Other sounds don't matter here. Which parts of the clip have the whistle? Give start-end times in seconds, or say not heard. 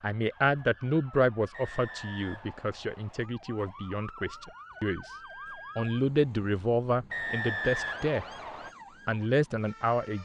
1.5-3.3, 7.1-8.8.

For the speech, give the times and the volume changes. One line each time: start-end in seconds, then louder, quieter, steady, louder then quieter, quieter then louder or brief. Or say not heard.
0.0-5.2 quieter
5.8-8.2 brief
9.1-10.2 brief.